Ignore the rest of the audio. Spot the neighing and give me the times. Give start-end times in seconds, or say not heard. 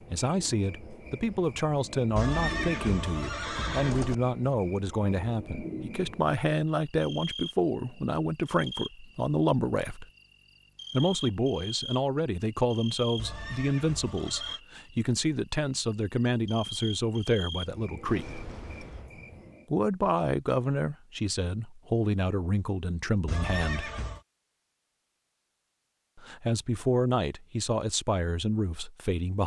2.1-4.2, 13.2-14.6, 23.2-24.2.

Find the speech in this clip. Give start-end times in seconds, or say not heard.
0.1-10.1, 10.9-18.4, 19.7-23.9, 26.1-29.4.